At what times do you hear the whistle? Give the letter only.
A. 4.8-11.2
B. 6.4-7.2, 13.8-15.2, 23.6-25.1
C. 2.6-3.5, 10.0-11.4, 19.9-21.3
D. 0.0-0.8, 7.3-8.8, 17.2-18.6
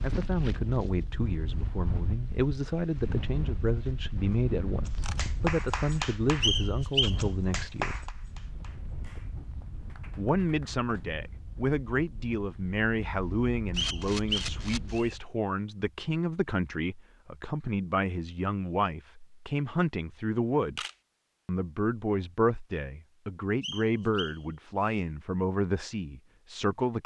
B.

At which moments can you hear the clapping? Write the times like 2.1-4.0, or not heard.
4.8-11.2.